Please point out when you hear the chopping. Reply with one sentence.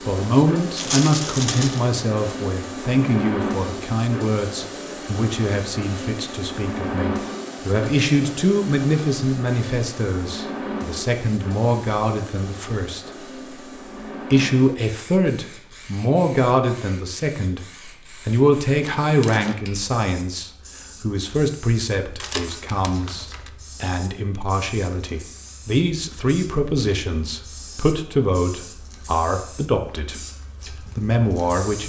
The chopping can't be heard in this clip.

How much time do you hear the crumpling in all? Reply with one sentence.
You can hear the crumpling for 3 seconds altogether.